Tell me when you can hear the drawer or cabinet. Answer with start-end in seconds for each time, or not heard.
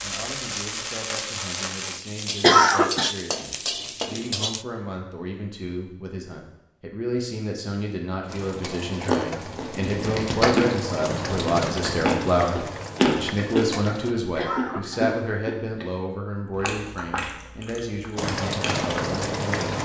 not heard.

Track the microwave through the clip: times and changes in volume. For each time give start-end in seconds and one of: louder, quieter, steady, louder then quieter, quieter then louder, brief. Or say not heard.
not heard.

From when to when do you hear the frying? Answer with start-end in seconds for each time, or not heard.
0.0-4.7, 8.2-14.2, 18.1-19.8.